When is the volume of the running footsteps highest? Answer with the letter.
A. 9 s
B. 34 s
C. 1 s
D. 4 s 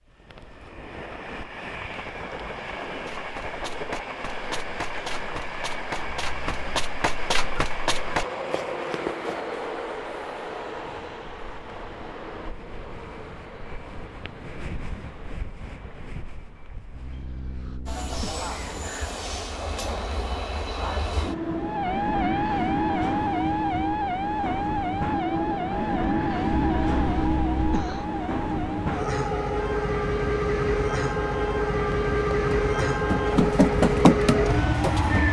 B.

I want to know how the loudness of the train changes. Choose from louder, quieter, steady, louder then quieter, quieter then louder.
louder.